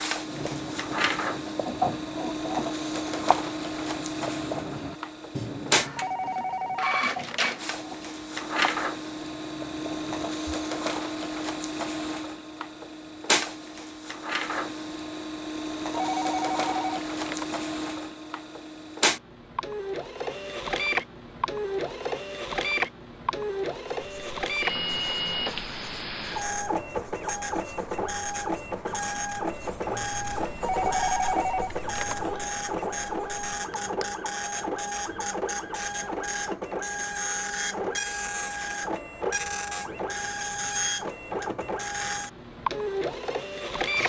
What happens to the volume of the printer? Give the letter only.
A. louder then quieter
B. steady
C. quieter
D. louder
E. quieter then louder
B.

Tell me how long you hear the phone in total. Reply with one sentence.
You can hear the phone for 5 seconds altogether.